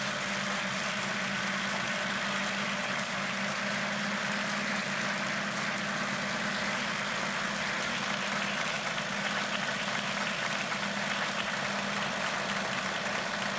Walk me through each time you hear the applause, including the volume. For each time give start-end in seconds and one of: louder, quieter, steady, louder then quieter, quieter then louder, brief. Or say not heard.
0.0-13.5 steady.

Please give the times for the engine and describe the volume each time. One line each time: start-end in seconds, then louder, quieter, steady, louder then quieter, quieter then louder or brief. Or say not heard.
0.0-13.5 steady.